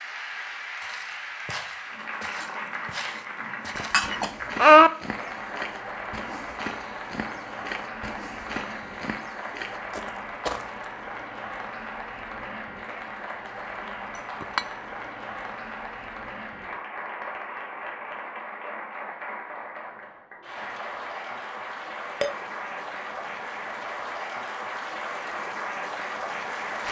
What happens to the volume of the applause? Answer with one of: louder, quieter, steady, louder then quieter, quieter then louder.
steady.